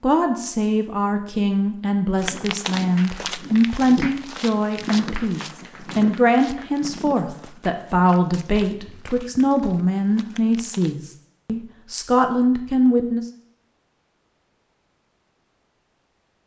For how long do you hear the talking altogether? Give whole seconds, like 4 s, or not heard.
13 s.